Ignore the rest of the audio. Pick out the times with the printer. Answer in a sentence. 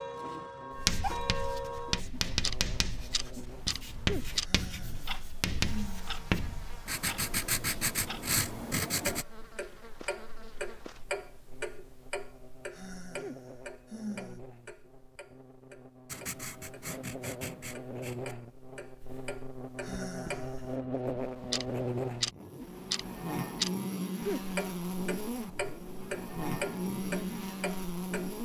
You can't hear the printer here.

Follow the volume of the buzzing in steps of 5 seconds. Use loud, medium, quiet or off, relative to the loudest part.
quiet, quiet, quiet, medium, loud, loud.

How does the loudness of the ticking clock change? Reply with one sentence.
The volume of the ticking clock goes down, then up.